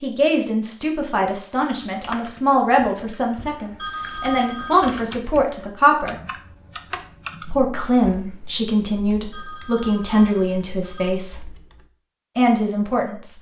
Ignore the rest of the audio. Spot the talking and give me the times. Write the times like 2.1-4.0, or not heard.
0.0-6.2, 7.4-11.5, 12.3-13.3.